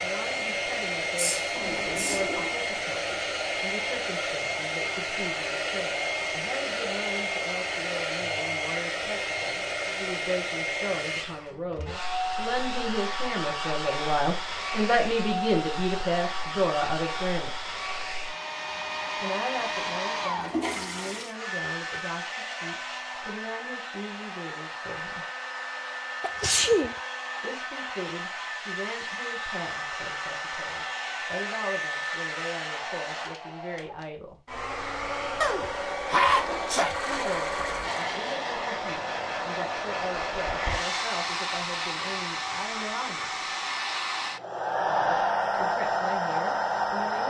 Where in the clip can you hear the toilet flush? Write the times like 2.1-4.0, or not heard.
1.6-2.6, 20.4-21.4, 36.2-38.0.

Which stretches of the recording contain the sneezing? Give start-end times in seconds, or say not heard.
1.1-2.2, 26.2-26.9, 35.4-37.0.